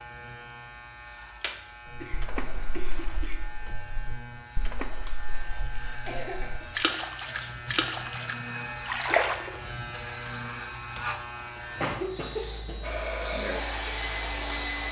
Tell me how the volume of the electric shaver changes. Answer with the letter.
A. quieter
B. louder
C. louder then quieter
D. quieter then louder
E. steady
B.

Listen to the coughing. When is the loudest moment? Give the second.
12 s.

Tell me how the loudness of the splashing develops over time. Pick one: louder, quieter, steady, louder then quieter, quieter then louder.
quieter then louder.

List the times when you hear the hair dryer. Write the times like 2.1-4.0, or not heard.
12.8-14.8.